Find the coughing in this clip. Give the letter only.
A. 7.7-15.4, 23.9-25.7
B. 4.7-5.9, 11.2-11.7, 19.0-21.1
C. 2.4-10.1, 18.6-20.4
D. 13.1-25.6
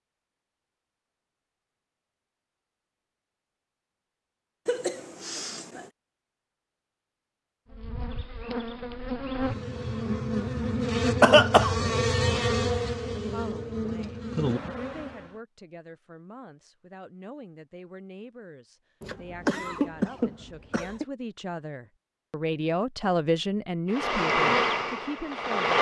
B.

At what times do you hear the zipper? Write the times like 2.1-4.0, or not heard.
not heard.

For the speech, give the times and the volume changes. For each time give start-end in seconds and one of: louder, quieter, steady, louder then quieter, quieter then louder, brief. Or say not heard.
13.1-25.6 louder.